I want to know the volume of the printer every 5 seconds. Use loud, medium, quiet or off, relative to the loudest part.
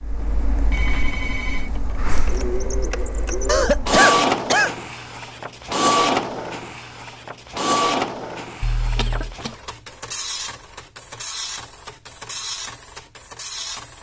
loud, loud, medium.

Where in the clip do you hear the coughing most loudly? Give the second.
4 s.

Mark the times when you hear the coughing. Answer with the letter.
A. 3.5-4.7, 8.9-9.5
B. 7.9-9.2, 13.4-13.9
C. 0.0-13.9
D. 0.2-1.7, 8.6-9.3
A.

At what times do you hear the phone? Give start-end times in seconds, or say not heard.
0.2-1.7, 8.6-9.3.